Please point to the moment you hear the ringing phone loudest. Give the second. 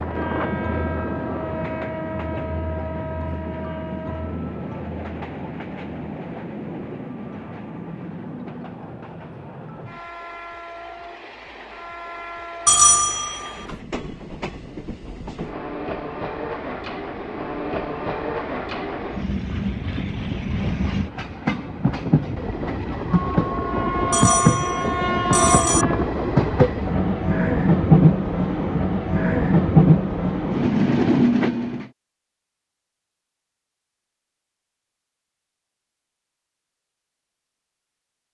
13 s.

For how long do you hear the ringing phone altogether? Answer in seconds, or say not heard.
3 s.